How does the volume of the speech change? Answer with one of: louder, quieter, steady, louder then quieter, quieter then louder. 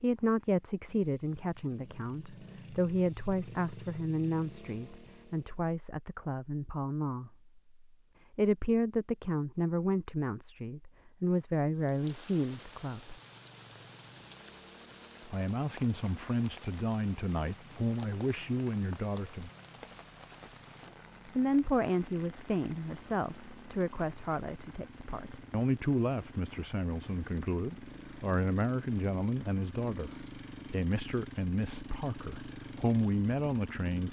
steady.